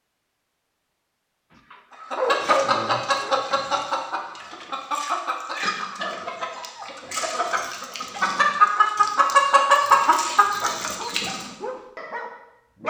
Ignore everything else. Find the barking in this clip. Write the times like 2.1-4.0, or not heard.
1.7-3.5, 10.8-12.8.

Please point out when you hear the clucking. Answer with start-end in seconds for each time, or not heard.
2.1-11.5.